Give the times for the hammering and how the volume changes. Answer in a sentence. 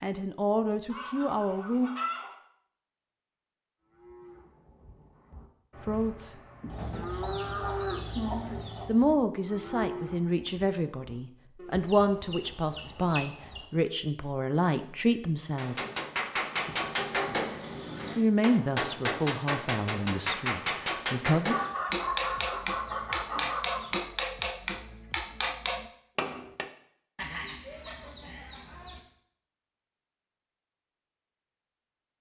You can hear the hammering from 15.6 to 26.7 s, at a steady volume.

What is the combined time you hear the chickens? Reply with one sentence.
You can hear the chickens for 12 seconds altogether.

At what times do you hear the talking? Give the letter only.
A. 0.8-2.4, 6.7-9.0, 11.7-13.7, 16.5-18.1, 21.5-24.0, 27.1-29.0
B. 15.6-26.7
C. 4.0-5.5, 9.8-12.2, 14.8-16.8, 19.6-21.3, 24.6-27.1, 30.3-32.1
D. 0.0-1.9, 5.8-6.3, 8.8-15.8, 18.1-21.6
D.